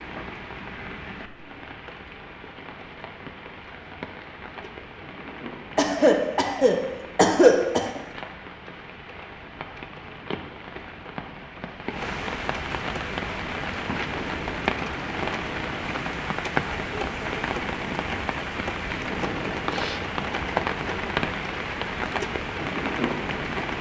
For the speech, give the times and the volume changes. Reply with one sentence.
You can't hear the speech here.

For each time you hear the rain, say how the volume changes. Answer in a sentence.
You can hear the rain from 0.0 to 23.7 s, getting louder.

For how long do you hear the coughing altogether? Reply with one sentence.
You can hear the coughing for 2 seconds altogether.